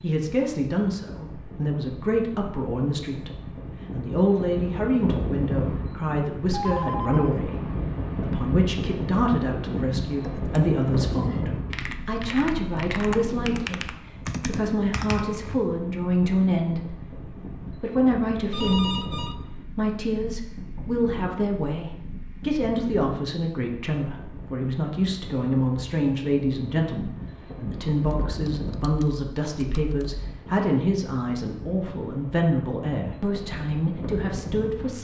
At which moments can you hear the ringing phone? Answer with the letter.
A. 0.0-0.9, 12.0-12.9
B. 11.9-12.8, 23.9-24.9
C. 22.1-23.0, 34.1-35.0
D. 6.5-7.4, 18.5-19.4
D.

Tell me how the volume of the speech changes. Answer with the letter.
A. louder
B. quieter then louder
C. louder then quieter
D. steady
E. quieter
D.